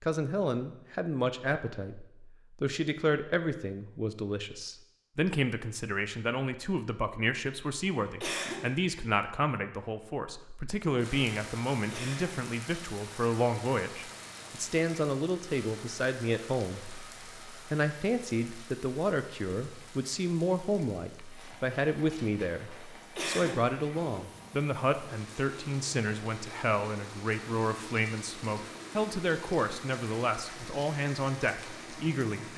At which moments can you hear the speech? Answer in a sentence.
The speech can be heard from 0.0 to 32.5 s.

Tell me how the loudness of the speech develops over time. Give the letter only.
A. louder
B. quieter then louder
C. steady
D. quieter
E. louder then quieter
C.